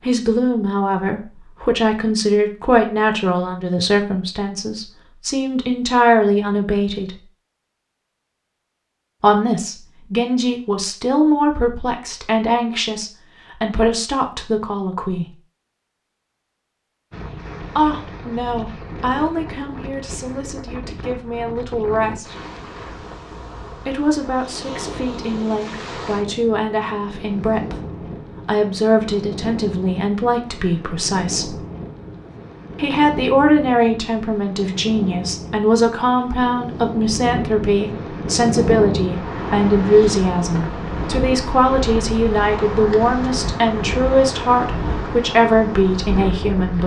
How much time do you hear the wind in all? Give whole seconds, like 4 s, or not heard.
30 s.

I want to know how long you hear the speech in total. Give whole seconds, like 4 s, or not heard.
40 s.